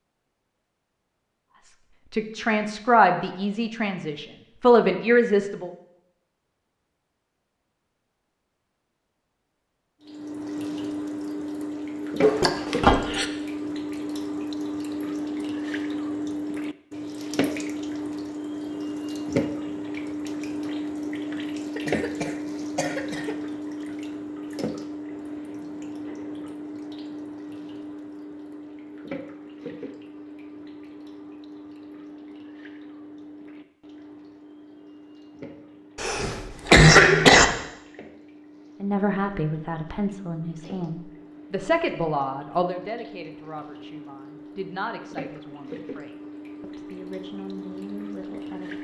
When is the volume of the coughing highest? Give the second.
37 s.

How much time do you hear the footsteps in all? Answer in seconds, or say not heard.
not heard.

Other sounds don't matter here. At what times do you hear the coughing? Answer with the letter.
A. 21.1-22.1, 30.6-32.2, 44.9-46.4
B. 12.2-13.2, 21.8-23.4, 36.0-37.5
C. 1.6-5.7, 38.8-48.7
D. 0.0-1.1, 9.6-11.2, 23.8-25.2
B.